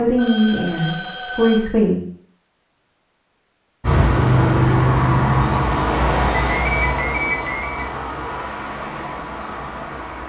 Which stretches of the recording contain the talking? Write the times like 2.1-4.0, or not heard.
0.0-2.0.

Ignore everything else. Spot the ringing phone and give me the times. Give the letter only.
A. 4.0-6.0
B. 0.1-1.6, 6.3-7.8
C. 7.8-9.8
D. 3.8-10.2
B.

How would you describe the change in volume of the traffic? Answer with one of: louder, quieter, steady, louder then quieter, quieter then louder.
quieter.